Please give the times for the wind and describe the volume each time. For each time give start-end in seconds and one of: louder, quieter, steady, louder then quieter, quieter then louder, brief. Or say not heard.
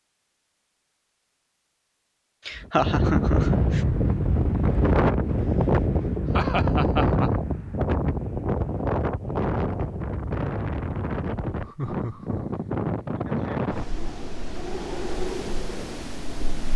2.5-16.7 quieter.